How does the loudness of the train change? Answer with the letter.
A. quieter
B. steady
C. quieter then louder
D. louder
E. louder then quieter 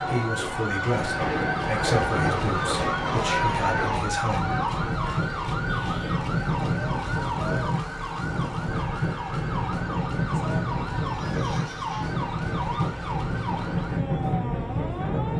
B.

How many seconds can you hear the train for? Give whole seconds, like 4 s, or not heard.
15 s.